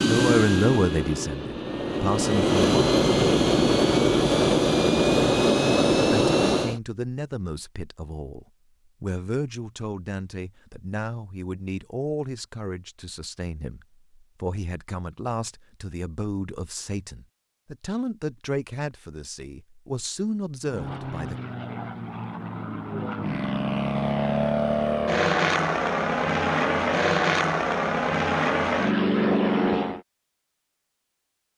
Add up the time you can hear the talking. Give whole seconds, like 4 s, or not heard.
18 s.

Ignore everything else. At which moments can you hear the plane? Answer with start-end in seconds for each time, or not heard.
0.0-6.8, 20.6-30.0.